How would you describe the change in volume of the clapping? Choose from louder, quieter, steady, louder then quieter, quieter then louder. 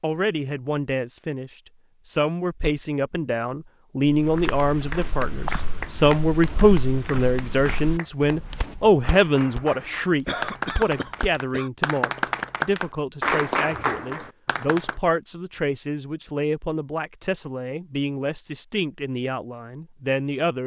quieter then louder.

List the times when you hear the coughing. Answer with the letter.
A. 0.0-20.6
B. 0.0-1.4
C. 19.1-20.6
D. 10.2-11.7
D.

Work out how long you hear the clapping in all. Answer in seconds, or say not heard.
10 s.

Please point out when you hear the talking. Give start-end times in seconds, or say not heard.
0.0-20.6.